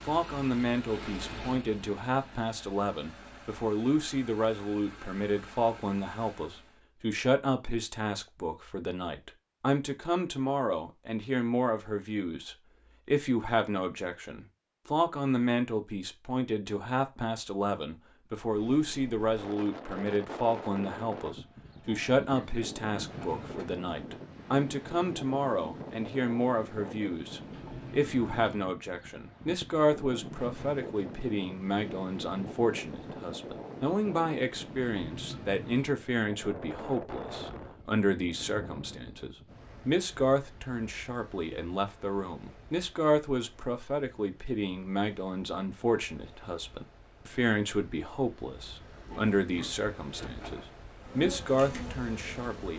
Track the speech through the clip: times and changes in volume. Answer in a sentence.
The speech can be heard from 0.1 to 52.7 s, at a steady volume.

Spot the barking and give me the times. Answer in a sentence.
The barking can't be heard in this clip.